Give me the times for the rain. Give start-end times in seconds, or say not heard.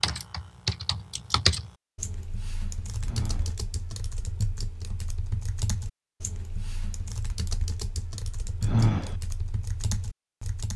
not heard.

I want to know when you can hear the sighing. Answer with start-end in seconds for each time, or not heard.
3.0-3.5, 8.6-9.2.